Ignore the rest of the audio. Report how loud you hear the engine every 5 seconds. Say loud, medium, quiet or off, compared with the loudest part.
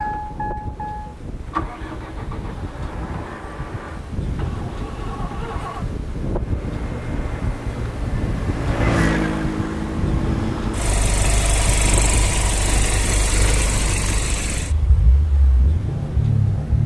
medium, loud, loud, loud.